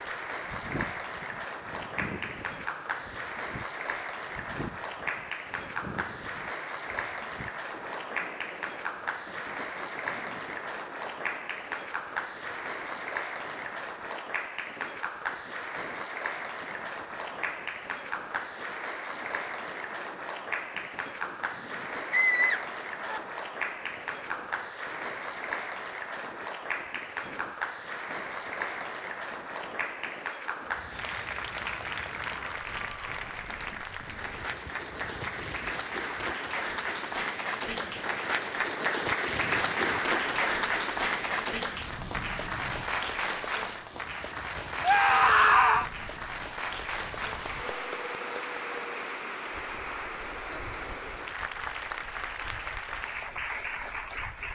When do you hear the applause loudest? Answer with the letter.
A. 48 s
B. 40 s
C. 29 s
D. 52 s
B.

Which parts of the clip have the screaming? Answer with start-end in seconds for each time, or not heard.
22.1-23.2, 44.8-45.9.